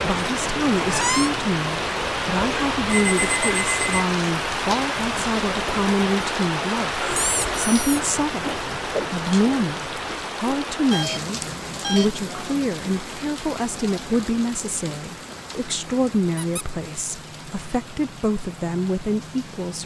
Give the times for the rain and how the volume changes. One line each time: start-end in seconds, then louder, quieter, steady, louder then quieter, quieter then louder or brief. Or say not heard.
0.0-19.8 quieter.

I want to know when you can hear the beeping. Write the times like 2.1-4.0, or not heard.
2.9-4.0, 10.9-12.1.